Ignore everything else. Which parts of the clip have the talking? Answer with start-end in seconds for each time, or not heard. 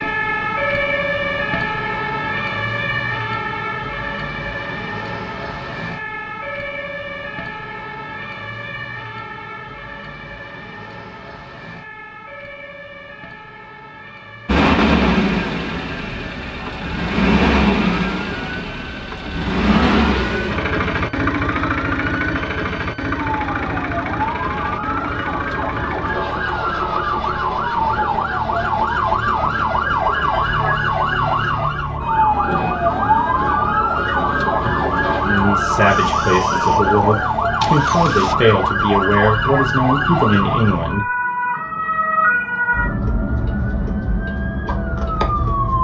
35.2-41.1.